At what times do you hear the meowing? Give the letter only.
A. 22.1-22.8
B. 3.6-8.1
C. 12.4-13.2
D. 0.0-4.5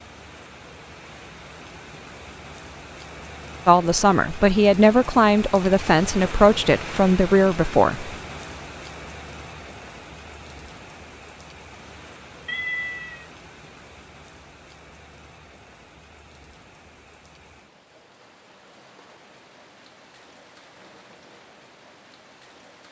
C.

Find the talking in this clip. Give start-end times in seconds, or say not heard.
3.6-8.1.